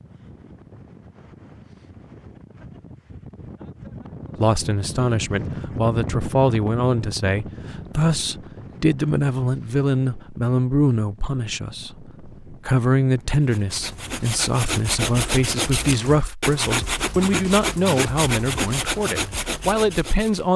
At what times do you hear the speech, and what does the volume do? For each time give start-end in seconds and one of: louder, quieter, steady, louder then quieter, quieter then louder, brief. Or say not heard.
4.3-20.5 steady.